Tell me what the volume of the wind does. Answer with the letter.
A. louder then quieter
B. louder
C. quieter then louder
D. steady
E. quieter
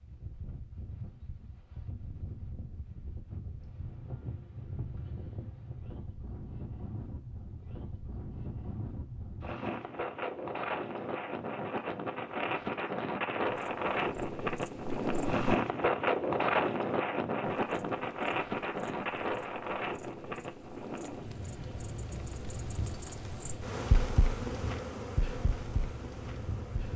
A.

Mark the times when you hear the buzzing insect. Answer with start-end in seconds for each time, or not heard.
13.5-15.6, 17.4-26.9.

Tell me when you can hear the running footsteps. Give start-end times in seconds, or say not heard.
not heard.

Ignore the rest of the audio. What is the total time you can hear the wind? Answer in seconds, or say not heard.
27 s.